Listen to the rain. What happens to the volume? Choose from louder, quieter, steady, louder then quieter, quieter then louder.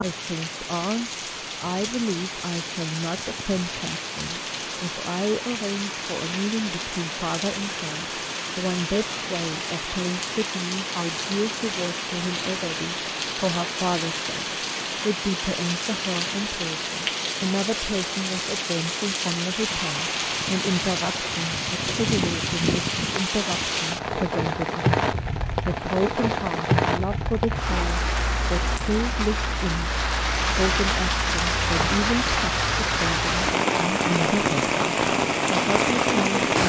louder.